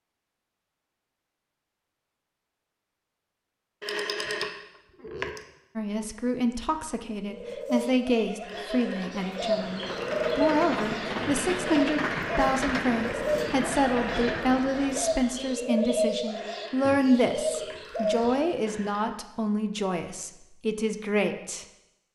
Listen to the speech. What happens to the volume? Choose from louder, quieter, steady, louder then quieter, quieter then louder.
steady.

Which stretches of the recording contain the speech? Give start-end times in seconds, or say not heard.
5.8-21.6.